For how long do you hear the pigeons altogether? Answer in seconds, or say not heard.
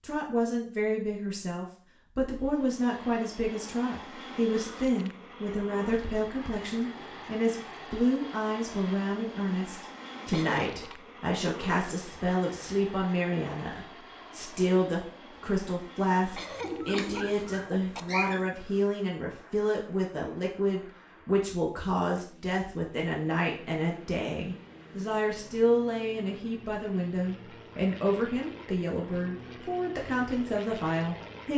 2 s.